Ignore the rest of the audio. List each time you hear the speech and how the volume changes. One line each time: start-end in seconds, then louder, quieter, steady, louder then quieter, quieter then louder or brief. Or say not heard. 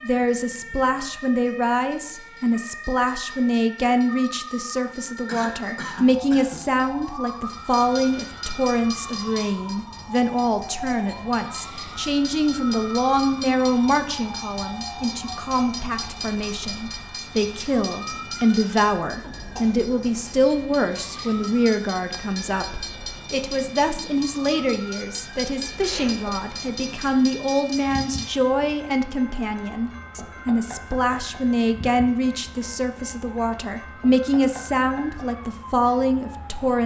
0.0-36.8 steady.